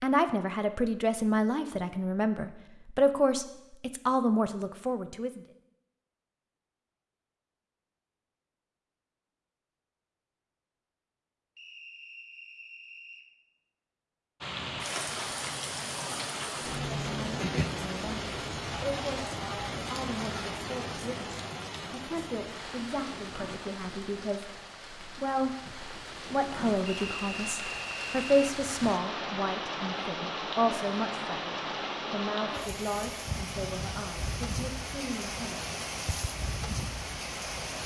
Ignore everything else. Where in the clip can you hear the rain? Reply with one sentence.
You can hear the rain from 14.4 to 37.8 s.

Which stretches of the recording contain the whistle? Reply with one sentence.
The whistle can be heard from 11.6 to 13.2 s and from 26.9 to 28.6 s.